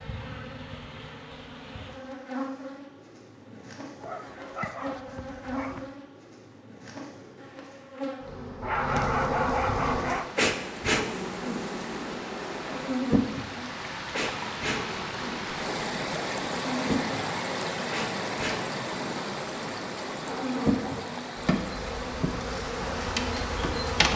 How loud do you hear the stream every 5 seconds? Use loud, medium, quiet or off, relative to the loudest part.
off, off, medium, loud, medium.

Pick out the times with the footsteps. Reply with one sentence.
You can't hear the footsteps here.